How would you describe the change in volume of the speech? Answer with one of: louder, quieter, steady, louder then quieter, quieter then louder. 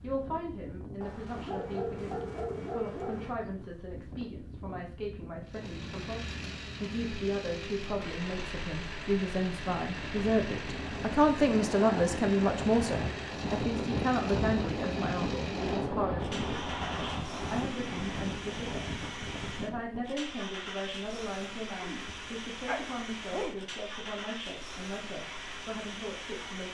louder then quieter.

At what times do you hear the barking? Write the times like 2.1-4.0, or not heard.
1.0-3.4, 21.8-24.1.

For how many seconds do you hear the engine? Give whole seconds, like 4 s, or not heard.
21 s.